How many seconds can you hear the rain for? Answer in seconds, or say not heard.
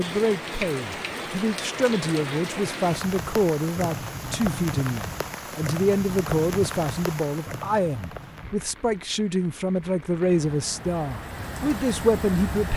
13 s.